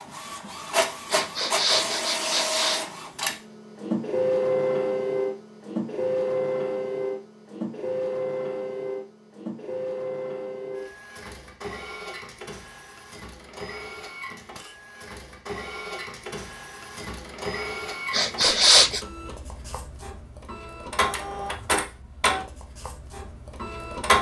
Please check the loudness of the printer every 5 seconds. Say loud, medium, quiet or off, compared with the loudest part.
loud, loud, medium, medium, loud.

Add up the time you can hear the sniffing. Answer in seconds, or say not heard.
3 s.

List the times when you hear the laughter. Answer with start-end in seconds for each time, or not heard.
not heard.